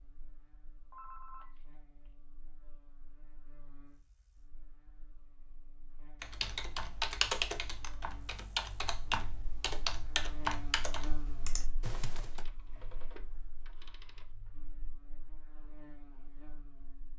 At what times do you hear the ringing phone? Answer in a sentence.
The ringing phone can be heard from 0.9 to 2.1 s and from 12.3 to 14.2 s.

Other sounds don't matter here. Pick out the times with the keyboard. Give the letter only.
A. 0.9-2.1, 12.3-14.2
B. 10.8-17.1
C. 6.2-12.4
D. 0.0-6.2
C.